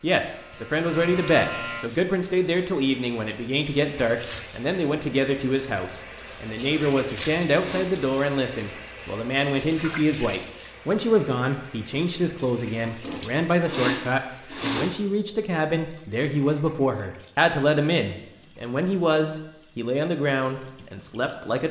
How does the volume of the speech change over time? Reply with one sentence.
The volume of the speech stays about the same.